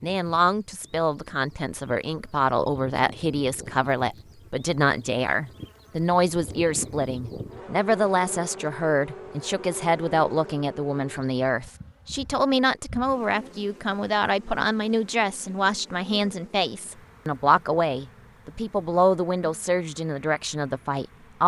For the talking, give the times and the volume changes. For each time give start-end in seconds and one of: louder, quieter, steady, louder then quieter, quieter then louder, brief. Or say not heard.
0.0-21.4 steady.